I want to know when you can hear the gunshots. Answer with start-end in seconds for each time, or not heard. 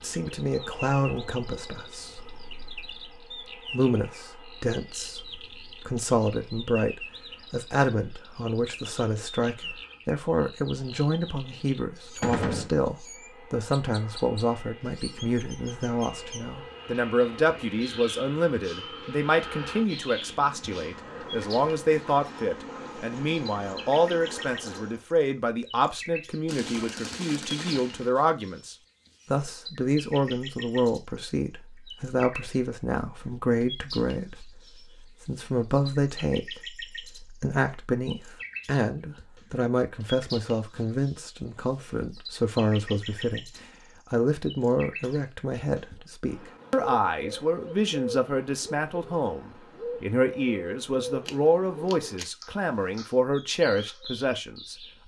12.2-12.7, 26.4-28.1, 51.2-52.3.